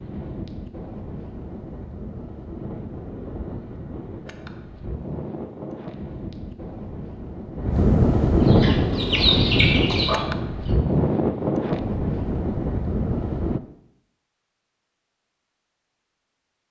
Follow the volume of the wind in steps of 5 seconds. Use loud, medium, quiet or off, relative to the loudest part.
quiet, loud, loud, off.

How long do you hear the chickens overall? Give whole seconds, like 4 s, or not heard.
2 s.